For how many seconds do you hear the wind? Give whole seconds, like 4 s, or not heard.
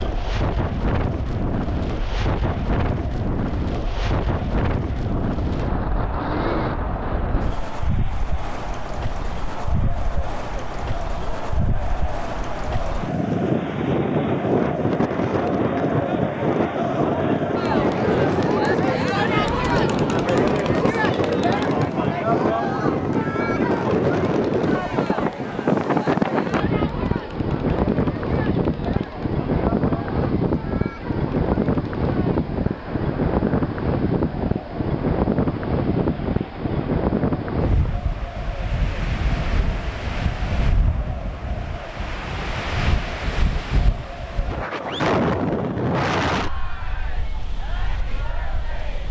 49 s.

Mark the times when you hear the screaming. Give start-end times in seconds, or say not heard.
not heard.